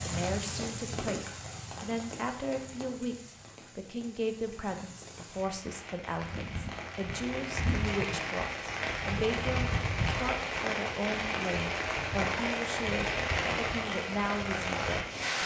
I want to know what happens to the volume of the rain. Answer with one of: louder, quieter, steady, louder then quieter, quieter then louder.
quieter then louder.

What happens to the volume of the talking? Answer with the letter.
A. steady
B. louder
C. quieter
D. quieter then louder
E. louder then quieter
A.